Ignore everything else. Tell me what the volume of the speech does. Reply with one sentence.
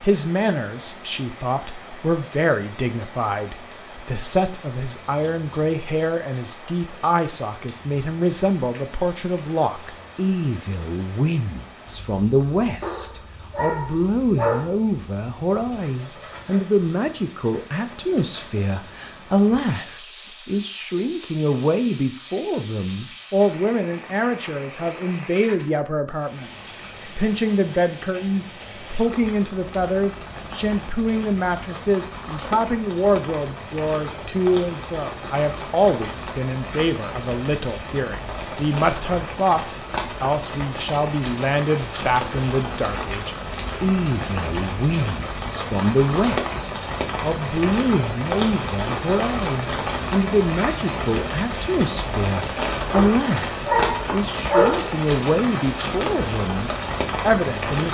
The volume of the speech stays about the same.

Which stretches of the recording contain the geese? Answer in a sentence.
The geese can't be heard in this clip.